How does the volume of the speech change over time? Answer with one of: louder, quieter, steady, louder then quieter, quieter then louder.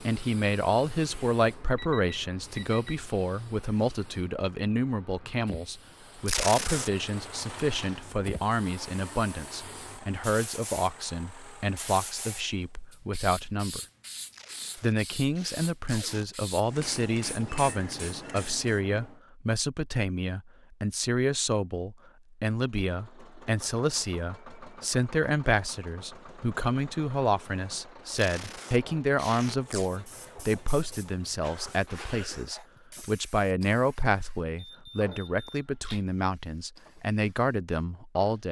steady.